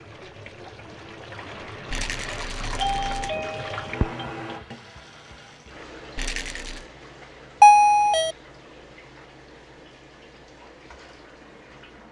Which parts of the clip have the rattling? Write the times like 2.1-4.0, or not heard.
1.9-3.4, 6.2-6.8.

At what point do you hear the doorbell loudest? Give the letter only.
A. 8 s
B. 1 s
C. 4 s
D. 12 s
A.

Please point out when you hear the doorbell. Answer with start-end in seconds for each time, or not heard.
2.4-4.0, 7.6-8.3.